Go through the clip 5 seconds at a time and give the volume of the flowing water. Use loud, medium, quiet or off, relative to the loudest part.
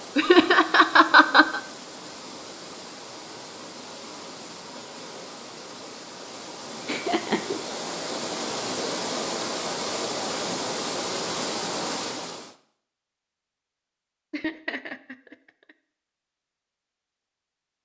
medium, loud, loud, off.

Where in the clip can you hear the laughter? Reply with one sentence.
The laughter can be heard from 0.1 to 1.6 s, from 6.8 to 7.6 s and from 14.3 to 15.3 s.